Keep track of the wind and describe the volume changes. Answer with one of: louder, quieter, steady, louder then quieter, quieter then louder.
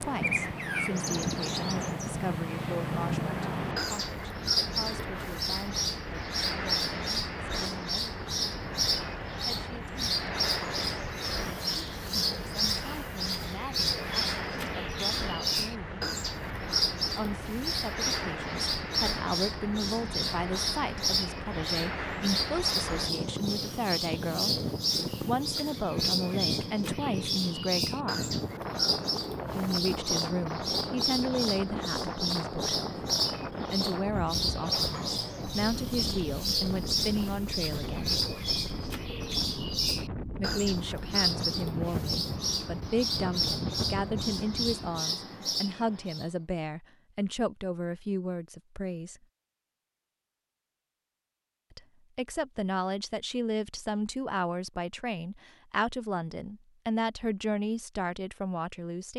steady.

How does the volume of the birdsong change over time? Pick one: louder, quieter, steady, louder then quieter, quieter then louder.
steady.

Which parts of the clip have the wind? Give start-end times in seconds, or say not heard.
0.0-45.0.